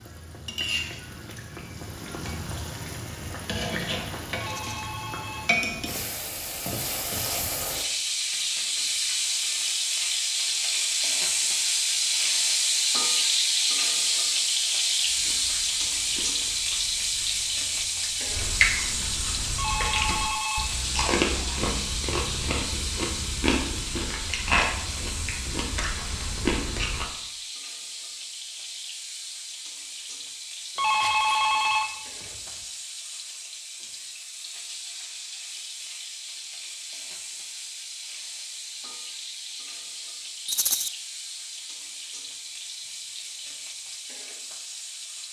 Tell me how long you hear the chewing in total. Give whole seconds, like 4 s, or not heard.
12 s.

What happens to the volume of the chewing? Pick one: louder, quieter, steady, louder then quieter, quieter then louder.
louder.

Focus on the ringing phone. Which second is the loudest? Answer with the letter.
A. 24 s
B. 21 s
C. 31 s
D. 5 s
C.